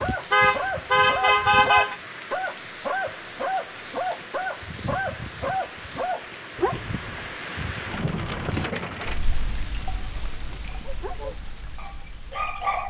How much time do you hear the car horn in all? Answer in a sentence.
The car horn can be heard for 2 seconds in total.